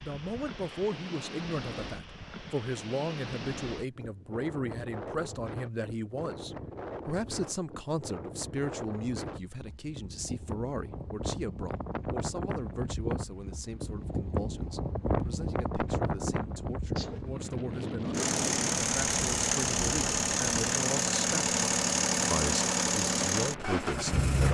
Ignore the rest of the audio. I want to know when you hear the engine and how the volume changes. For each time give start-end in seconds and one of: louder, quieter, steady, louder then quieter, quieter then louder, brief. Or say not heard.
18.1-24.4 steady.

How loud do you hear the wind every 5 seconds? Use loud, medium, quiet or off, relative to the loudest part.
medium, medium, loud, loud, medium.